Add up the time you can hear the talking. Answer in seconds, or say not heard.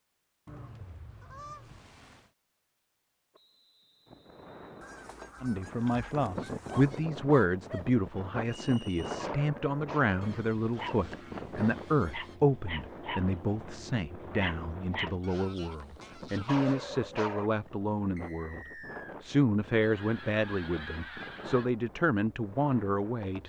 18 s.